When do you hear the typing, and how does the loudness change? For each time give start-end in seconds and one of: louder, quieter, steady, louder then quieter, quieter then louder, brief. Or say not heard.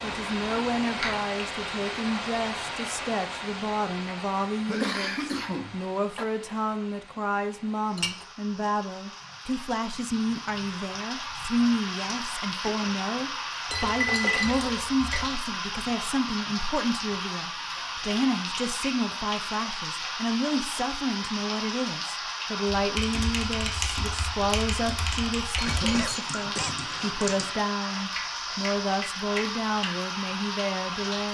22.6-29.9 steady.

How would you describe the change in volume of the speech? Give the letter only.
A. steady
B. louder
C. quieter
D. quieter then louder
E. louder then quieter
A.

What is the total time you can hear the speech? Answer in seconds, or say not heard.
31 s.